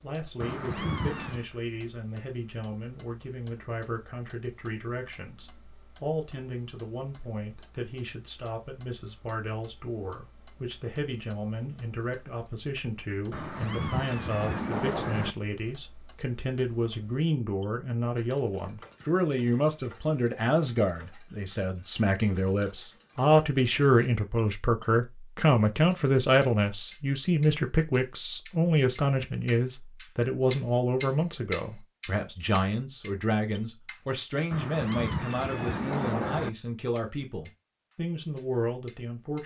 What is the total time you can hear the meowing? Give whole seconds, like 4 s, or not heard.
5 s.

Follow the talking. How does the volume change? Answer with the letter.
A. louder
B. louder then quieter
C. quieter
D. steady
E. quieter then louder
B.